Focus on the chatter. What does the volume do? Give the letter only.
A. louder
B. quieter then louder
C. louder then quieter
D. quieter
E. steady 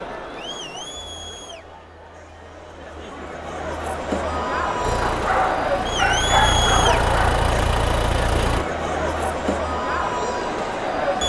A.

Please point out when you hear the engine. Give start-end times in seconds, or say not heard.
4.8-8.7.